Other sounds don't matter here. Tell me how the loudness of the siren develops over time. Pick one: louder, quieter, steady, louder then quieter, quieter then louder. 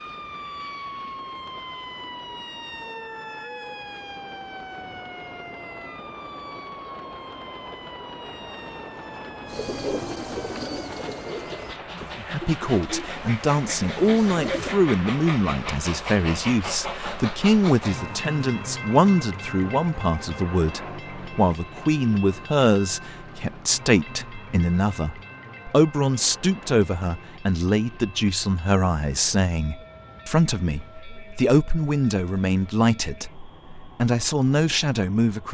quieter.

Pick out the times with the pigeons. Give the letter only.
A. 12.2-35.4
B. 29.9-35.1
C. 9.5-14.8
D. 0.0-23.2
C.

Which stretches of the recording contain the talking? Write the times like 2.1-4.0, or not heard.
12.2-35.4.